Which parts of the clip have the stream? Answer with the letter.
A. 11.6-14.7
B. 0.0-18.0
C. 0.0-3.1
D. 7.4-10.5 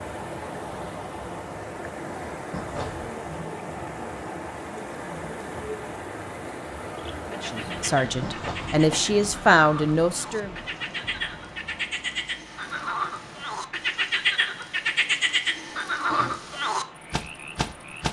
B.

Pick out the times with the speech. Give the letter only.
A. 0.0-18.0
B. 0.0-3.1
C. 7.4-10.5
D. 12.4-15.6
C.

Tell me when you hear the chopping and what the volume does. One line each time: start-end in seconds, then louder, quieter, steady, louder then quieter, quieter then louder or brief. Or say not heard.
not heard.